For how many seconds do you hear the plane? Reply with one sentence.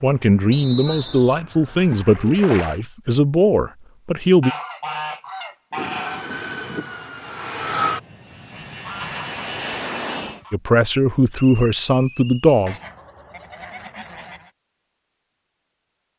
The plane can be heard for 5 seconds in total.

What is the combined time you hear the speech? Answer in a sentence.
You can hear the speech for 7 seconds altogether.